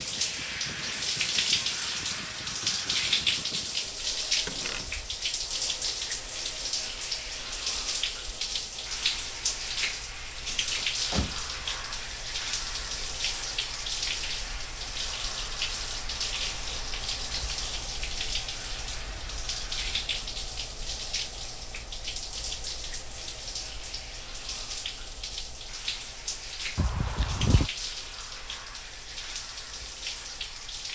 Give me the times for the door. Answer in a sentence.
The door can be heard from 4.5 to 5.2 s, from 11.1 to 11.6 s and from 26.8 to 27.7 s.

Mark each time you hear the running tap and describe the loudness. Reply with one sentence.
The running tap can be heard from 0.0 to 30.9 s, getting quieter.